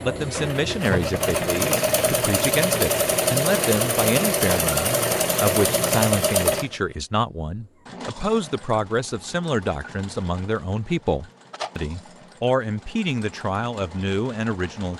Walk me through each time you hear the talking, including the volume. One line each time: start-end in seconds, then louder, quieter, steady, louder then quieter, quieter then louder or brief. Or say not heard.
0.0-14.9 steady.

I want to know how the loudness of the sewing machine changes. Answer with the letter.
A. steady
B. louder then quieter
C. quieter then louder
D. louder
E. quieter
E.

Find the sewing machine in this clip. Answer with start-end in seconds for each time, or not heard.
0.0-14.9.